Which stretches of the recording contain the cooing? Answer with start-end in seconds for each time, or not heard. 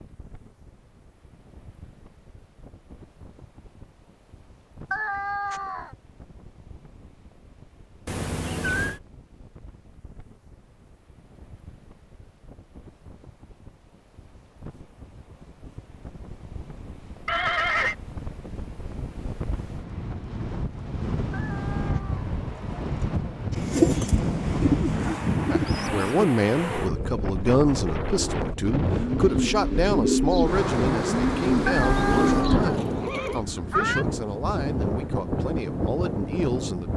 23.5-32.8.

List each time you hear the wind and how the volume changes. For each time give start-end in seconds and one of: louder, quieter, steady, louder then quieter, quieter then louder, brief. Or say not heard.
0.0-36.9 louder.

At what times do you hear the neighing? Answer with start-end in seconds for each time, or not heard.
8.1-9.0, 17.2-17.9, 31.9-33.5.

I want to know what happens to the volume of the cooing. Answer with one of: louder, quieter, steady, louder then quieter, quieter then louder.
quieter then louder.